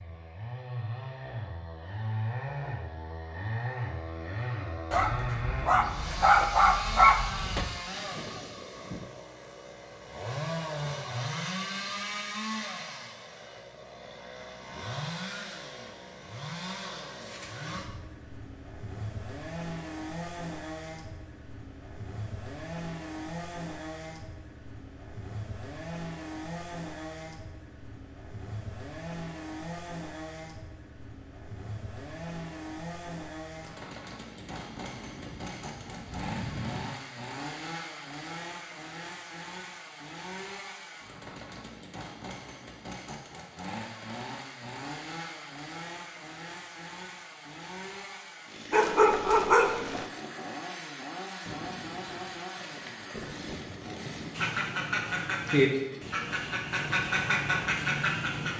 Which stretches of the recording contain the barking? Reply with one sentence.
The barking can be heard from 4.9 to 7.8 s and from 48.7 to 50.0 s.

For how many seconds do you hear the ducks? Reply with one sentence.
You can hear the ducks for 4 seconds altogether.